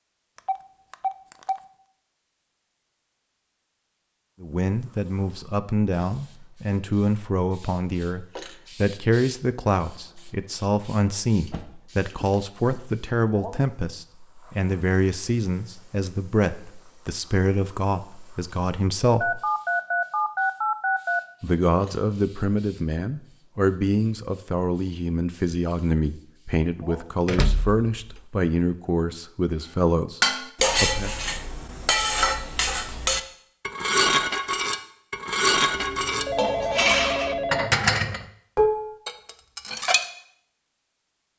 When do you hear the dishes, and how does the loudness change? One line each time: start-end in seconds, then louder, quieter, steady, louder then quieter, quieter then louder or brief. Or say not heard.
30.2-40.0 steady.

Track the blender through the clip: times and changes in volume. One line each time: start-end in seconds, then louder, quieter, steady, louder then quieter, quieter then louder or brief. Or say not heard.
not heard.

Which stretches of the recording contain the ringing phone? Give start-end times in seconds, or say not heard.
0.3-1.6, 19.2-21.2, 35.7-37.8.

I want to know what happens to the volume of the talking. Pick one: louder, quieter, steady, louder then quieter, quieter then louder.
steady.